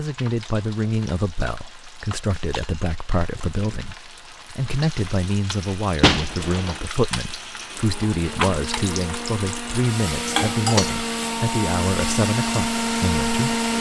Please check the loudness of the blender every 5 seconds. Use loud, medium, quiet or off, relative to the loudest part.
off, medium, loud.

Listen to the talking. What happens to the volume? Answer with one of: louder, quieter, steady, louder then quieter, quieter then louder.
steady.